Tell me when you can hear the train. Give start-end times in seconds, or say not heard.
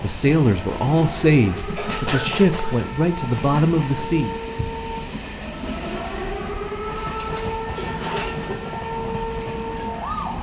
0.0-10.3.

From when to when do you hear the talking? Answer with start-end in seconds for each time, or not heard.
0.0-4.3.